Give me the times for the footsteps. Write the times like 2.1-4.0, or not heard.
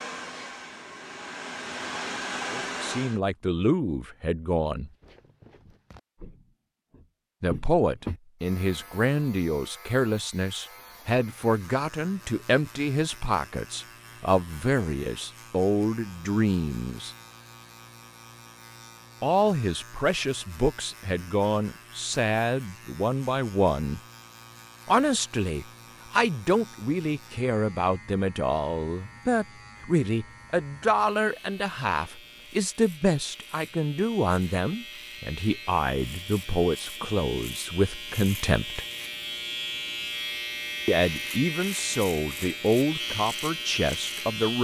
4.8-8.2.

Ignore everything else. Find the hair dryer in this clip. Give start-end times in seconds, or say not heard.
0.0-3.2.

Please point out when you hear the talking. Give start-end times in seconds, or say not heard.
2.5-4.9, 7.4-17.1, 19.2-24.0, 24.9-38.9, 40.9-44.5.